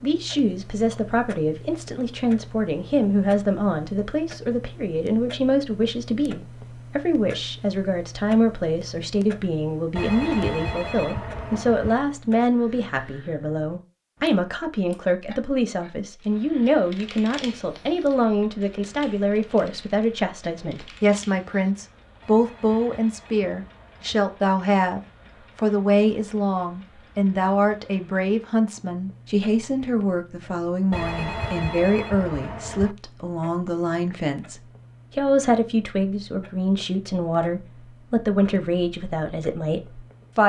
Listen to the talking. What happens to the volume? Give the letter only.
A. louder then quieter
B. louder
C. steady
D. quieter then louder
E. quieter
C.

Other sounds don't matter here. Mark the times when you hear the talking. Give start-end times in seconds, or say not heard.
0.0-40.4.